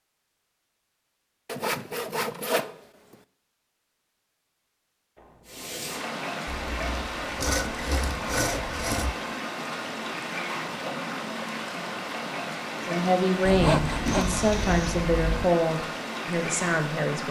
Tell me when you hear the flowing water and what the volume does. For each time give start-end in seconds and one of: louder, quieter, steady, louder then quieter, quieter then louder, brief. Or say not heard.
5.5-17.2 steady.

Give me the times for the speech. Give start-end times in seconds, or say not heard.
12.8-17.2.